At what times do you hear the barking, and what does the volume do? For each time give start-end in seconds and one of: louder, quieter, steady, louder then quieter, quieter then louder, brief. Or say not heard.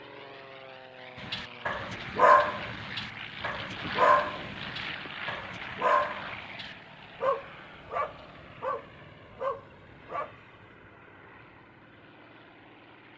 1.2-10.3 quieter.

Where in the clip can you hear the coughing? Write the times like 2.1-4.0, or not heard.
not heard.